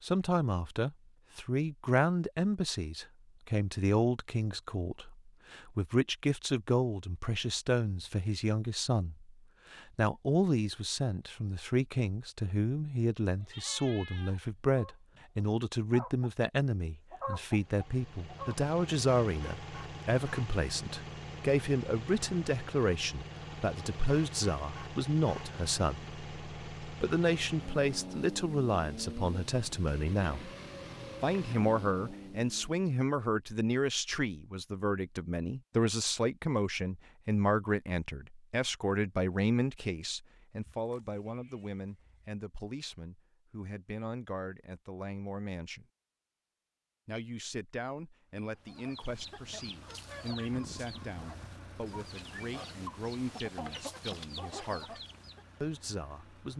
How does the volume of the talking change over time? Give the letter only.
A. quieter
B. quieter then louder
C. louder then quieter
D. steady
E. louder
A.